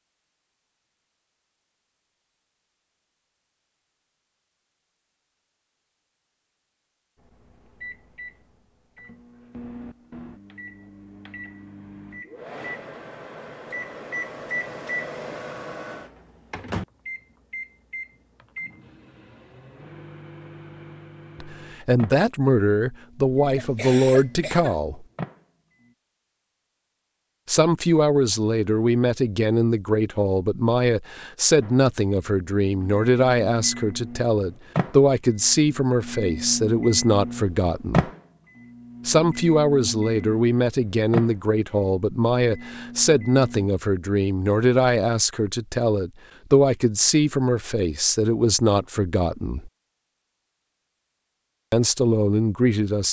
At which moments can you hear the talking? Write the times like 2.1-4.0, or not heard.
21.4-25.1, 27.4-38.1, 39.0-49.7, 51.7-53.0.